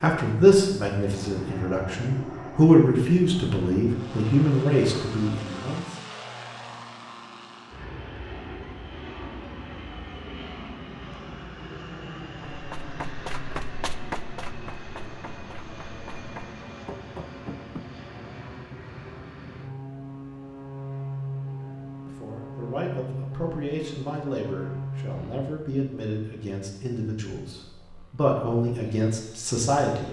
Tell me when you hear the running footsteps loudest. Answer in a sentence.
The loudest moment of the running footsteps is at 14 seconds.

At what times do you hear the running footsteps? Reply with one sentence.
The running footsteps can be heard from 12.5 to 17.9 s.